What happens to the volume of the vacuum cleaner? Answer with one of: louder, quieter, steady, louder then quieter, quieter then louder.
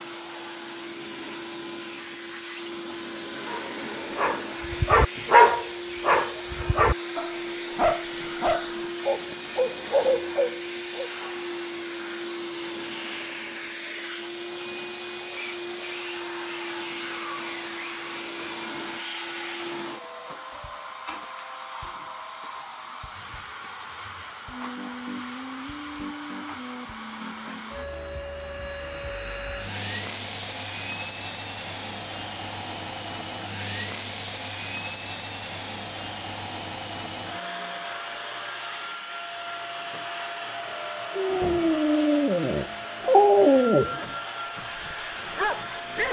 steady.